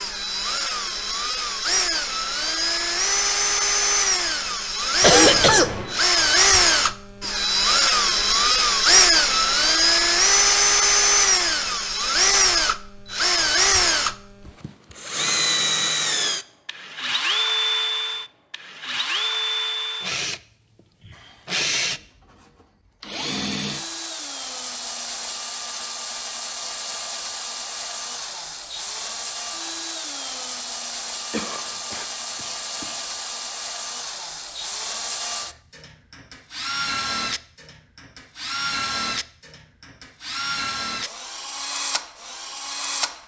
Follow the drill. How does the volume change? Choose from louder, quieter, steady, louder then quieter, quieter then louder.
quieter.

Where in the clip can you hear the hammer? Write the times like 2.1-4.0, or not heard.
not heard.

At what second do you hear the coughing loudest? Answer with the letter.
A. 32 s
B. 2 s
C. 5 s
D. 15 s
C.